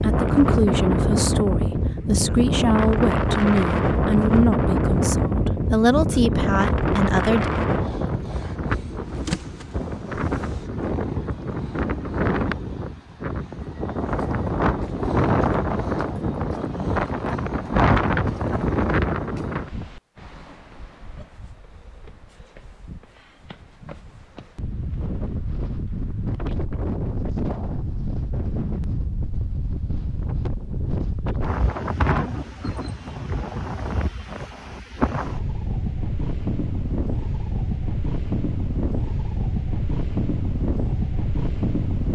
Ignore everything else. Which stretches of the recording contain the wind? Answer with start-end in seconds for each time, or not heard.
0.0-42.1.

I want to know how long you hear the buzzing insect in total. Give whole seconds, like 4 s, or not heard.
2 s.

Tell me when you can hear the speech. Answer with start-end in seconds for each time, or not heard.
0.0-7.5.